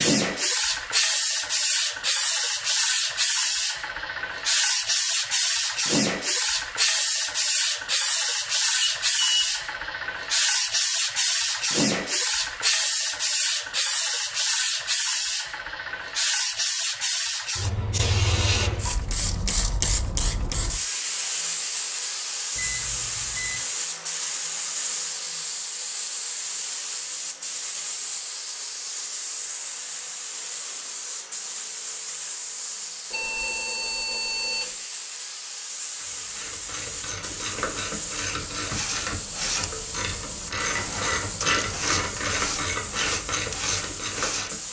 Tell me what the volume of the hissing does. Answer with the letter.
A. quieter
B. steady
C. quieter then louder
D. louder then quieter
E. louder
A.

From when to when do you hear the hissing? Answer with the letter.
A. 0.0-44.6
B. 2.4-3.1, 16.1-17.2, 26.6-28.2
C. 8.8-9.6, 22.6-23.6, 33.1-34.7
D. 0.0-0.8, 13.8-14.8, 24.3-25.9
A.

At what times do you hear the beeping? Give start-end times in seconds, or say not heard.
8.8-9.6, 22.6-23.6, 33.1-34.7.